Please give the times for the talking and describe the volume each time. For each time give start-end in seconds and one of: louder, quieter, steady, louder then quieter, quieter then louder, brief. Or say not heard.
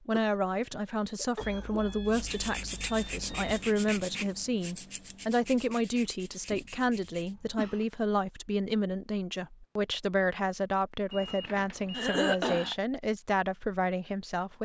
0.1-14.5 steady.